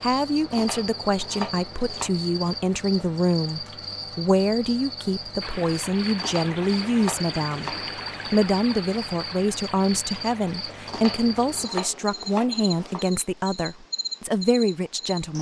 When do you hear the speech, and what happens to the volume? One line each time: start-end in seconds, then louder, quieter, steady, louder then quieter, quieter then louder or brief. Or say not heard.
0.0-15.3 steady.